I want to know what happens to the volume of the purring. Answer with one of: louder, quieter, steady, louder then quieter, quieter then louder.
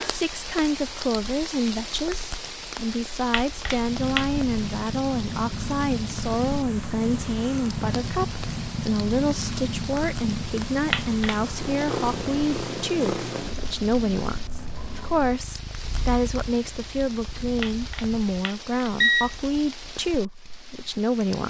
quieter.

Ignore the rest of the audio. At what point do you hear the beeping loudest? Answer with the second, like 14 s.
19 s.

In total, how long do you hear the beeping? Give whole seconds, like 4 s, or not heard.
3 s.